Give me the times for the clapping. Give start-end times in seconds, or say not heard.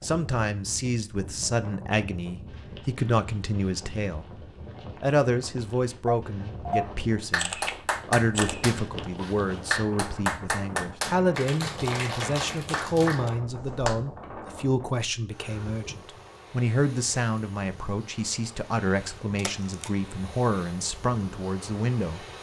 7.3-13.9.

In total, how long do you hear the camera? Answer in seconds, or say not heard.
3 s.